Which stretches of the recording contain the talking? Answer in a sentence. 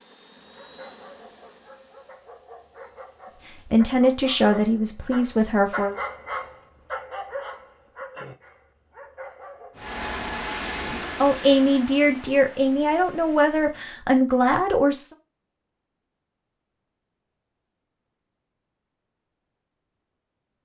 You can hear the talking from 3.7 to 6.0 s and from 10.8 to 15.1 s.